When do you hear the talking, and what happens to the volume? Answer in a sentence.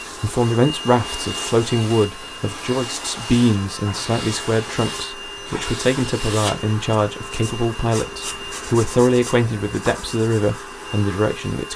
The talking can be heard from 0.1 to 11.7 s, at a steady volume.